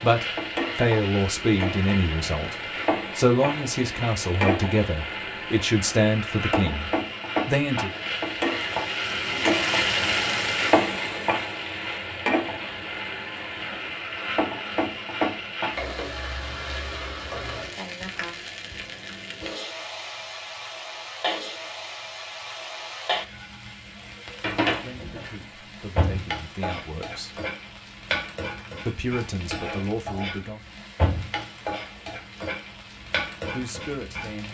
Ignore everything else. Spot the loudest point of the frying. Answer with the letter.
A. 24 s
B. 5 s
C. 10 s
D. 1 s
C.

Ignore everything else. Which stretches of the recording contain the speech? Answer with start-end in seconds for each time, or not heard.
0.0-2.5, 3.1-7.9, 24.6-27.4, 28.9-30.7, 33.0-34.4.